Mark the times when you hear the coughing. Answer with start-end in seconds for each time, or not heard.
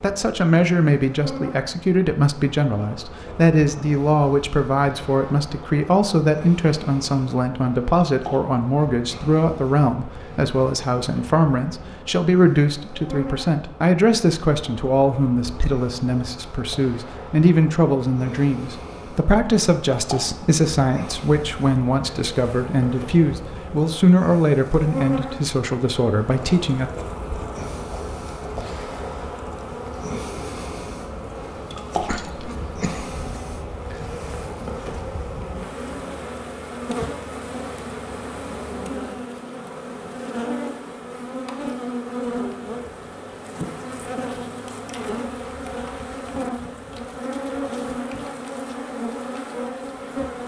32.0-33.1.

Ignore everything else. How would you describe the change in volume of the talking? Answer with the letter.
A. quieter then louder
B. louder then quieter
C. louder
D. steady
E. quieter
D.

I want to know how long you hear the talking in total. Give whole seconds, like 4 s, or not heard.
27 s.